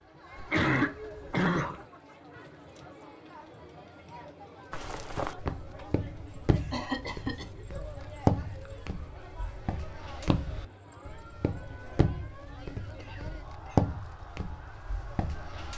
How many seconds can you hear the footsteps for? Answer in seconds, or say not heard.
11 s.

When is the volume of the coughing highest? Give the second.
1 s.